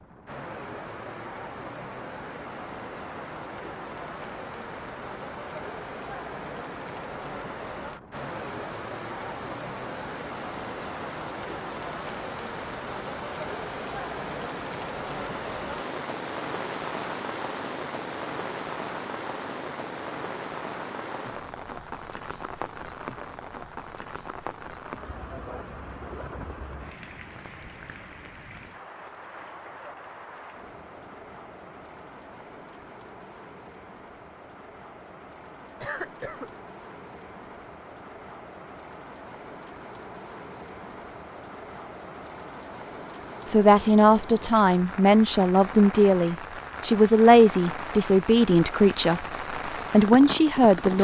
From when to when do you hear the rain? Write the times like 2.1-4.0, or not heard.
0.0-50.9.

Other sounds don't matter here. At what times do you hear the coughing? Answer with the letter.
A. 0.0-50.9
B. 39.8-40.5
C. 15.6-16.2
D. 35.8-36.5
D.